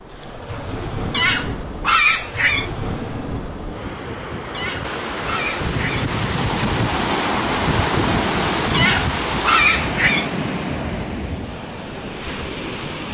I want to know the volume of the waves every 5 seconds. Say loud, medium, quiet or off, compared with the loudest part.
medium, loud, medium.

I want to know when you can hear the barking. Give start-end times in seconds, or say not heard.
1.1-2.7, 4.5-6.1, 8.7-10.3.